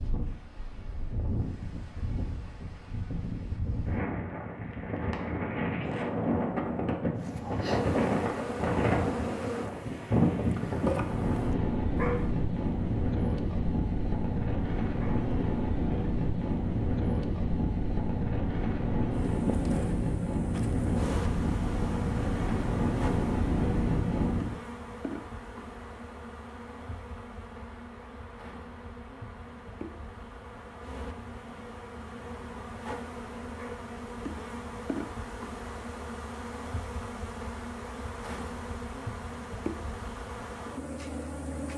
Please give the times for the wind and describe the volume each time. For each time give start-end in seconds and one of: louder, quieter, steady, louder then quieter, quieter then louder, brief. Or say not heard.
0.0-24.6 louder.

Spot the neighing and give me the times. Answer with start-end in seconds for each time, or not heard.
not heard.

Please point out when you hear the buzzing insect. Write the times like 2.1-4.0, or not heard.
7.2-41.7.